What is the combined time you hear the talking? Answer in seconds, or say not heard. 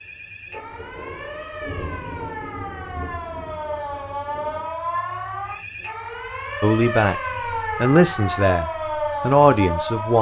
3 s.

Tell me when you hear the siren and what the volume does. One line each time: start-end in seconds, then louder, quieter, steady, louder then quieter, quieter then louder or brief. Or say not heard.
0.0-10.1 louder.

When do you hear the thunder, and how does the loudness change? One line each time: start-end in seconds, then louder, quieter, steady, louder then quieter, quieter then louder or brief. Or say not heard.
0.5-4.7 louder then quieter.